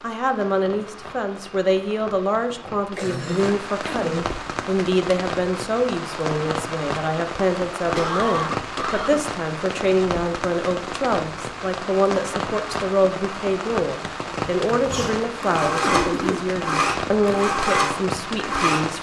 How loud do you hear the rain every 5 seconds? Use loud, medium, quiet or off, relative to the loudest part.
medium, loud, loud, loud.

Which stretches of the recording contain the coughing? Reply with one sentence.
The coughing can be heard from 3.0 to 4.1 s, from 7.9 to 9.2 s and from 15.8 to 16.5 s.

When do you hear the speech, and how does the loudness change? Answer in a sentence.
You can hear the speech from 0.0 to 18.9 s, at a steady volume.